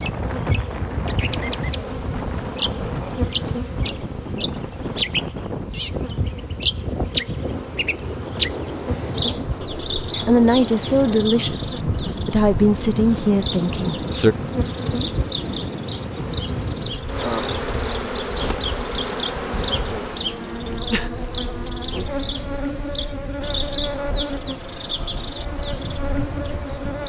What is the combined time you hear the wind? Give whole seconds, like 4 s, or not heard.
27 s.